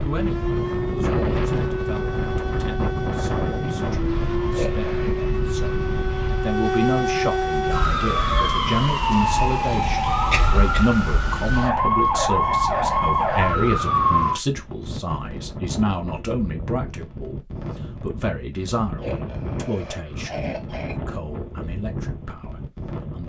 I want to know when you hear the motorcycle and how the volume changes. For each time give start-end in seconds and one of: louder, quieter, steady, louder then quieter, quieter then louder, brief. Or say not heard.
not heard.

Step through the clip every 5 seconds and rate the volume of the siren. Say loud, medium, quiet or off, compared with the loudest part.
medium, loud, loud, off, off.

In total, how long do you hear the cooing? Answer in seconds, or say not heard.
not heard.